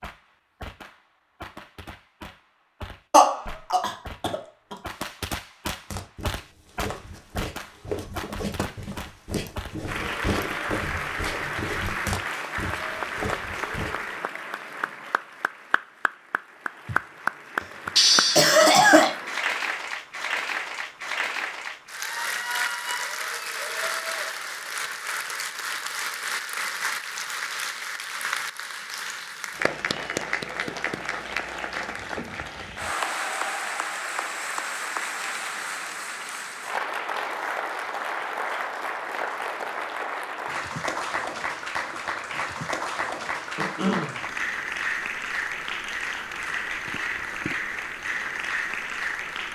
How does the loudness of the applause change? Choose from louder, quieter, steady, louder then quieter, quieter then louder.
steady.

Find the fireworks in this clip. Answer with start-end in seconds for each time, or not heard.
0.0-9.8.